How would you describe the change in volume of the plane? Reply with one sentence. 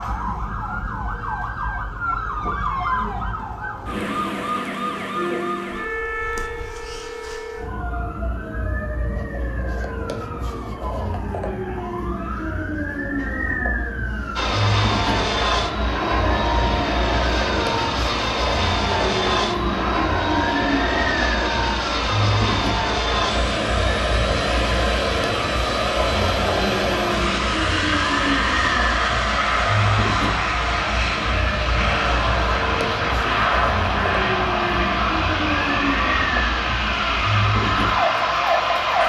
The volume of the plane stays about the same.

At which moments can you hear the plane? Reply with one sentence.
The plane can be heard from 14.3 to 39.0 s.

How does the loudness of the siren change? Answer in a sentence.
The loudness of the siren stays about the same.